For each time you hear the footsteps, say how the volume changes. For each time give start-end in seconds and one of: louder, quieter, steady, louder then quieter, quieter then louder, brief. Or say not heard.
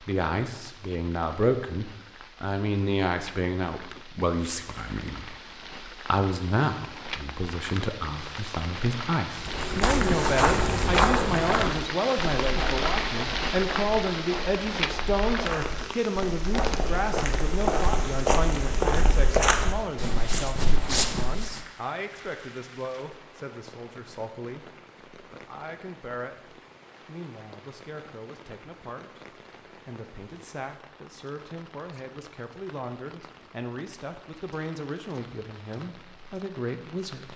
9.3-21.6 quieter then louder.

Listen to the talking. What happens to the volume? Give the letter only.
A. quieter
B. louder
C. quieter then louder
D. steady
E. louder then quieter
A.